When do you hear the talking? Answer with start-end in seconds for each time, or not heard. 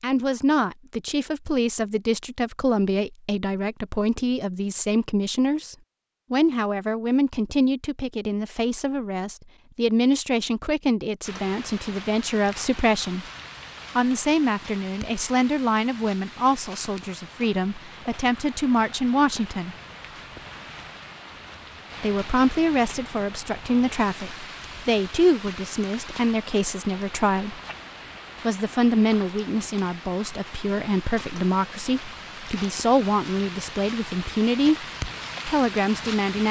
0.0-13.2, 13.9-19.8, 22.0-27.6, 28.4-34.9, 35.5-36.4.